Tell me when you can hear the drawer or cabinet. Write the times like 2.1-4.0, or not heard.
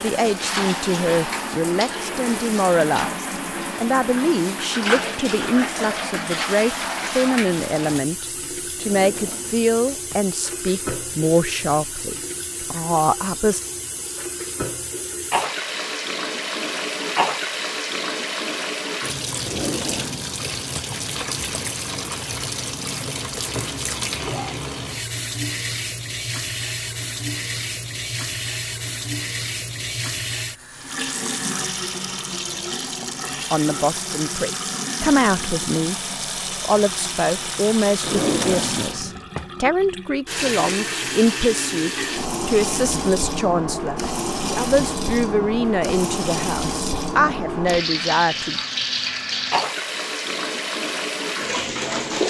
8.8-10.2, 19.4-20.9, 38.0-39.5.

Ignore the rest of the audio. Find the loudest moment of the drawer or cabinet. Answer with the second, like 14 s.
38 s.